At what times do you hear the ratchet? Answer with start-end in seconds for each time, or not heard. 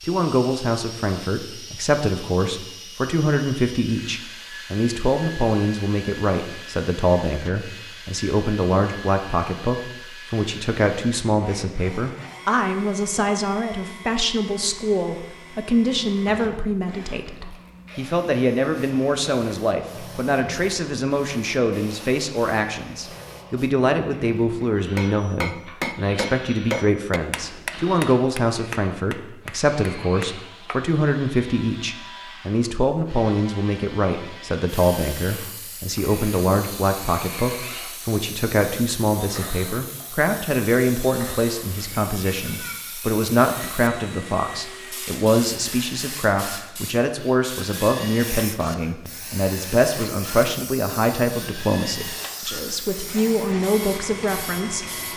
not heard.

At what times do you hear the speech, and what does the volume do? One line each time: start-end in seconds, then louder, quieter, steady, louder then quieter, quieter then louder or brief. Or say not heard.
0.1-55.0 steady.